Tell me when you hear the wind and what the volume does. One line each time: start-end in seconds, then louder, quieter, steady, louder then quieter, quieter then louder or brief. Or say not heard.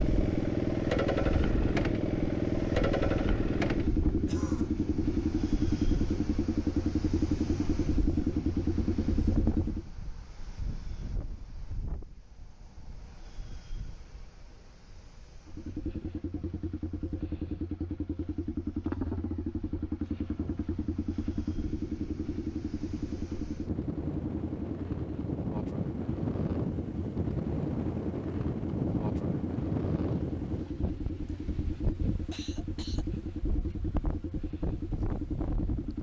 0.0-35.9 quieter then louder.